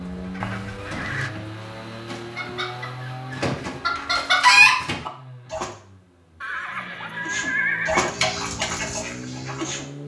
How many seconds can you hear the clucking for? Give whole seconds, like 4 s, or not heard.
8 s.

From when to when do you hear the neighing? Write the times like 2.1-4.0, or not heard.
0.4-1.3, 6.4-8.1.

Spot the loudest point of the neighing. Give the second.
8 s.